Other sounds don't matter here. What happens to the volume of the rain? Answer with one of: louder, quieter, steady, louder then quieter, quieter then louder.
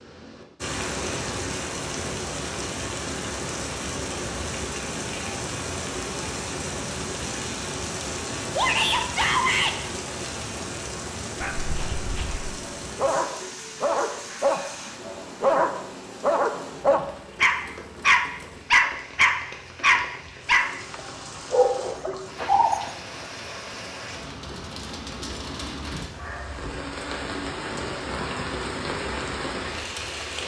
quieter then louder.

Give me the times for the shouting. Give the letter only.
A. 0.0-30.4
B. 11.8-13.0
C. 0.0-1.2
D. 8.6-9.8
D.